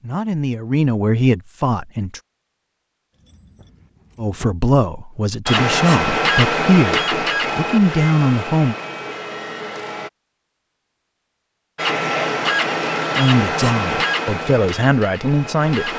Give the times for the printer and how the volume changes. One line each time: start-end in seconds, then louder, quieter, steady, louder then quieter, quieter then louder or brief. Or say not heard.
5.5-10.1 quieter
11.8-15.9 quieter.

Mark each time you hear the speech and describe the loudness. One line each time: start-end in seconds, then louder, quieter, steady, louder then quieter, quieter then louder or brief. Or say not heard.
0.0-2.2 brief
4.2-8.8 quieter then louder
13.2-15.9 brief.